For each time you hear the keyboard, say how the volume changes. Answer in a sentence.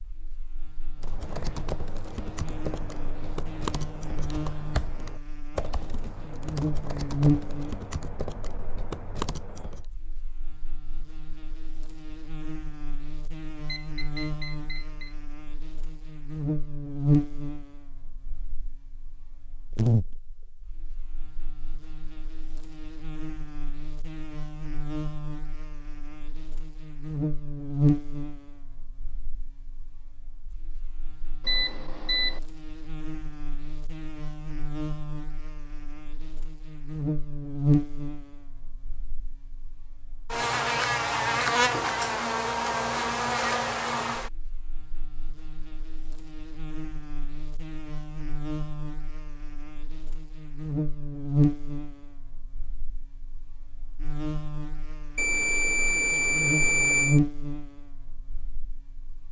You can hear the keyboard from 1.0 to 9.8 s, at a steady volume.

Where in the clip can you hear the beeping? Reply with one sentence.
The beeping can be heard from 13.7 to 15.2 s, from 31.4 to 32.4 s and from 55.1 to 57.2 s.